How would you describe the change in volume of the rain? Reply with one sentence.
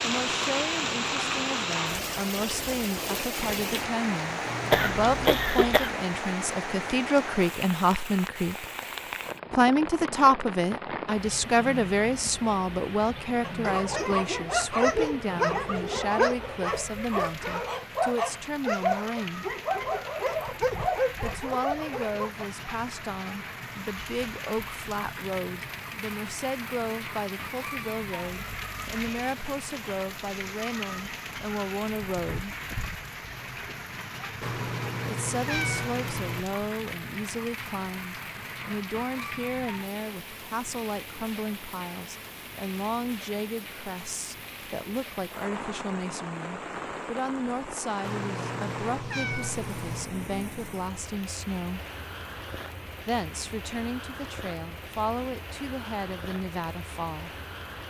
The loudness of the rain goes down.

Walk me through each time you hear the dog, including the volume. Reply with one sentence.
The dog can be heard from 13.4 to 22.4 s, at a steady volume.